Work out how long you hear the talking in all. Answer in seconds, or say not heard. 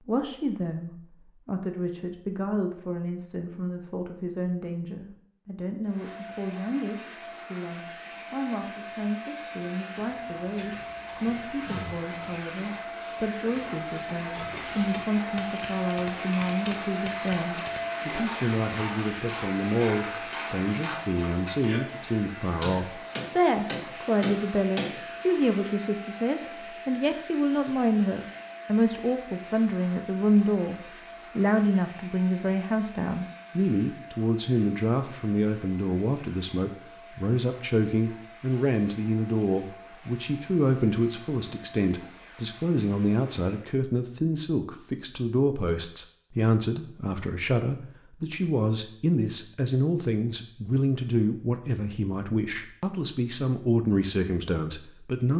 55 s.